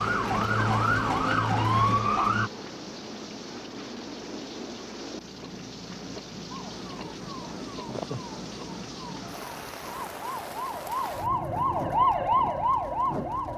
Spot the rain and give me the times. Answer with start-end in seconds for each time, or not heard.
0.0-13.5.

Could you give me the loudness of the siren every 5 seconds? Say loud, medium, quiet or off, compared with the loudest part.
loud, quiet, loud.